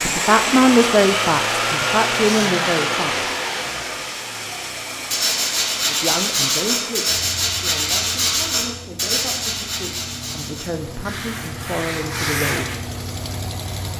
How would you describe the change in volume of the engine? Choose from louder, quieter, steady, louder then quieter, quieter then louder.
quieter then louder.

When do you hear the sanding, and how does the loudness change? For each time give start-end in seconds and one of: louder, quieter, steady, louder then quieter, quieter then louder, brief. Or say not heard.
5.1-12.8 quieter.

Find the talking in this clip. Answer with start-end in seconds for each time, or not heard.
0.0-3.2, 5.9-12.7.